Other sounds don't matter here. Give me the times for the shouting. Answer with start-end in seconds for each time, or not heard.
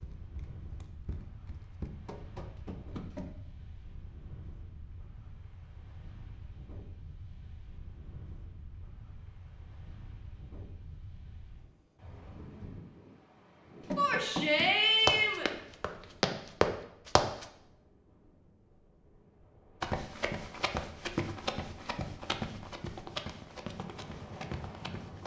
13.9-15.5.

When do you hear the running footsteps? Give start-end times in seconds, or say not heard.
0.0-3.4, 13.8-17.4, 19.8-25.2.